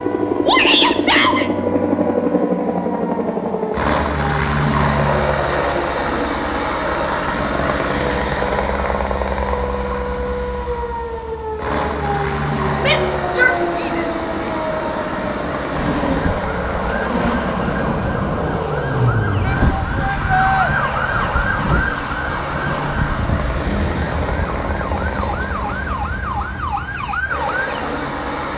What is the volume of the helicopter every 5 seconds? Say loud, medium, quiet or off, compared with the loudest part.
loud, loud, medium, medium, medium, medium.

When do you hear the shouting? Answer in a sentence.
The shouting can be heard from 0.5 to 1.5 s, from 12.8 to 14.5 s and from 19.4 to 20.7 s.